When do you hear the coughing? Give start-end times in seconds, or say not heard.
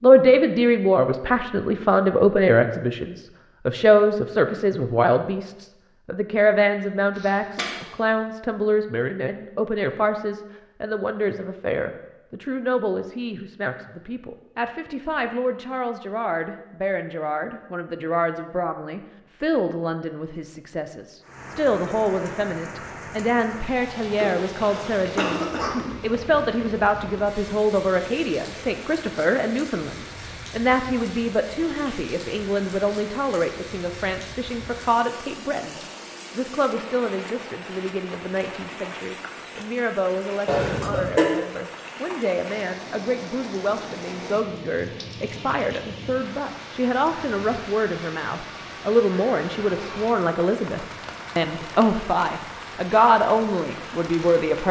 7.2-7.8, 24.2-25.9, 40.5-41.2.